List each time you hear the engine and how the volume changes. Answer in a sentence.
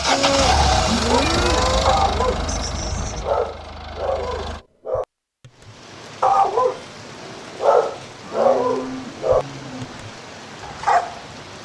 You can hear the engine from 0.0 to 4.7 s, getting quieter.